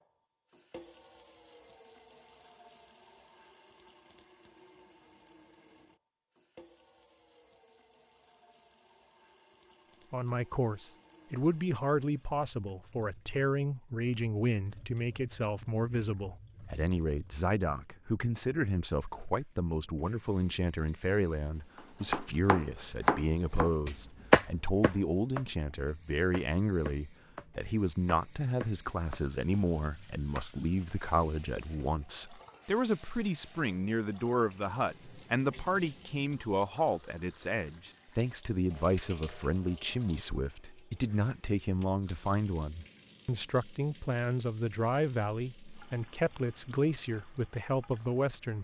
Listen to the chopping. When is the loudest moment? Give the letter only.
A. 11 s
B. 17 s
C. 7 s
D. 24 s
D.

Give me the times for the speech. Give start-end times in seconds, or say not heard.
10.1-48.5.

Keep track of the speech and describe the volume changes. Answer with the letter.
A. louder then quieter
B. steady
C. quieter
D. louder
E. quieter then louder
B.